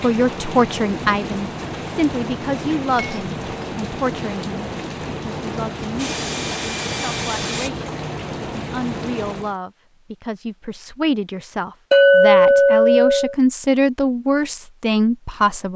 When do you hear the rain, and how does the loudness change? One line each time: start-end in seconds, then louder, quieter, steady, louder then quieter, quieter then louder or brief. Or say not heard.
0.0-9.6 steady.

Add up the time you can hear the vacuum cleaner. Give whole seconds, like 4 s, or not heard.
2 s.